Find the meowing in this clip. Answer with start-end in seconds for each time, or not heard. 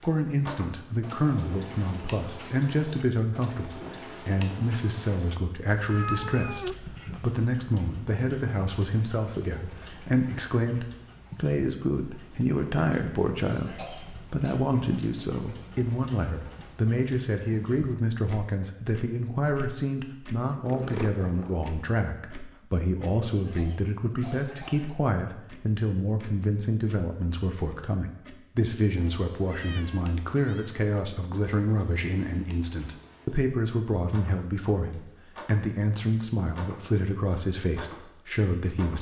5.8-7.4, 20.6-21.7, 29.4-30.8.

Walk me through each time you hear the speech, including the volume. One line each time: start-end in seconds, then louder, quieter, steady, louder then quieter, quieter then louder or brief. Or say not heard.
0.0-38.9 steady.